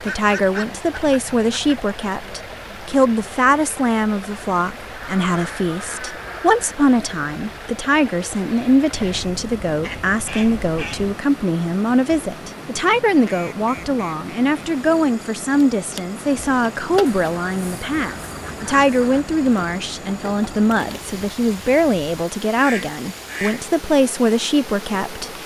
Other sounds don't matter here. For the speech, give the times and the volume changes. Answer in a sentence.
You can hear the speech from 0.0 to 25.3 s, at a steady volume.